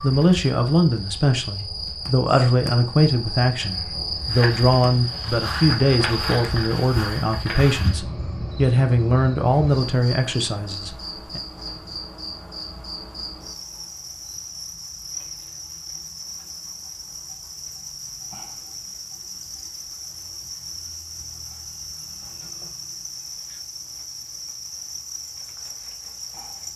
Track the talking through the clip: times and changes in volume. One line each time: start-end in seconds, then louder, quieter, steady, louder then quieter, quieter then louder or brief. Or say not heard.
0.0-11.4 steady.